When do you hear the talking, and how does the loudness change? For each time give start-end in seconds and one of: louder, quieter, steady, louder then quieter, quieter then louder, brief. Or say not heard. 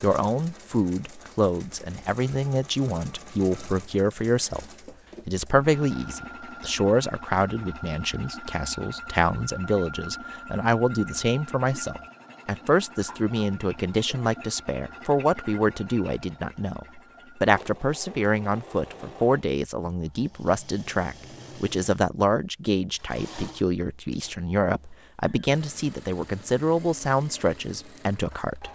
0.0-4.7 steady
5.2-28.6 steady.